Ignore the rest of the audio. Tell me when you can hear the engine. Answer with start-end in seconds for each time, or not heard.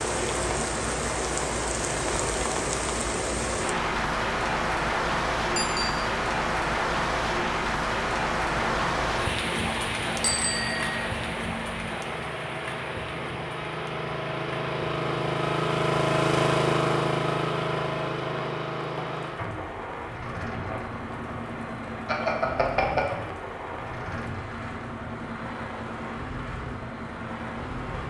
8.6-28.0.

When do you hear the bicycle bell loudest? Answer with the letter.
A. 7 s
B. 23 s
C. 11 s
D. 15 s
B.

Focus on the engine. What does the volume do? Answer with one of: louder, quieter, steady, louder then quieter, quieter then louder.
louder then quieter.